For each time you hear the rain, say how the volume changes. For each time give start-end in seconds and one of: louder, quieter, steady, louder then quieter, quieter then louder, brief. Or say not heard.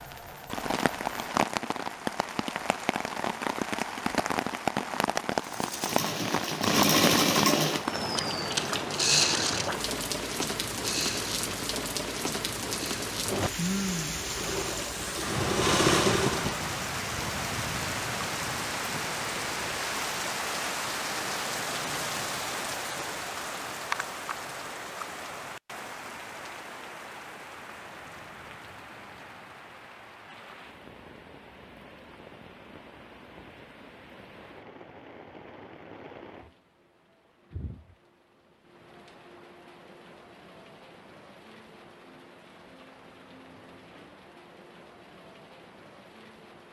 0.0-46.6 quieter.